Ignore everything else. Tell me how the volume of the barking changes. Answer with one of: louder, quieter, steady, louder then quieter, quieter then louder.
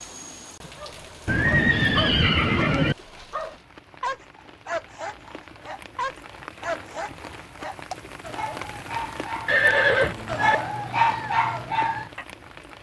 louder.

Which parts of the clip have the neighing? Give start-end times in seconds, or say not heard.
1.2-3.0, 9.4-10.6.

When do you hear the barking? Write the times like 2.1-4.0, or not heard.
0.8-12.2.